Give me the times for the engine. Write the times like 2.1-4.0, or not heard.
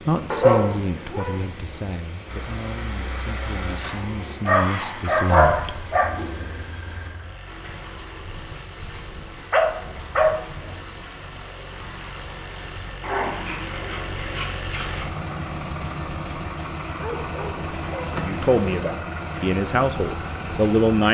2.2-21.0.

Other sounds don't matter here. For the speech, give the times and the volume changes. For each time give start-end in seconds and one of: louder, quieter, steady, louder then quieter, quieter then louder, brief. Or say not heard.
0.1-5.8 quieter then louder
18.1-21.0 brief.